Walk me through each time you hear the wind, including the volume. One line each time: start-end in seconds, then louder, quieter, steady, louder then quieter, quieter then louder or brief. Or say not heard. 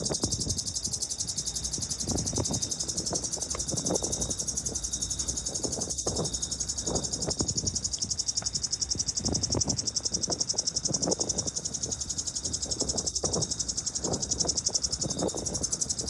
0.0-16.0 steady.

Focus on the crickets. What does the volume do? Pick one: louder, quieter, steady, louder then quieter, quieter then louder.
steady.